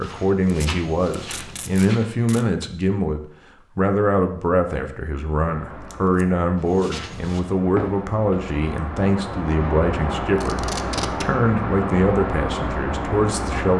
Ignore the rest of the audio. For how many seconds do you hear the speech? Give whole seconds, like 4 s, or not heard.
14 s.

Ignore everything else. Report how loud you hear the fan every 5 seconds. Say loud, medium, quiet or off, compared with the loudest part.
off, medium, loud.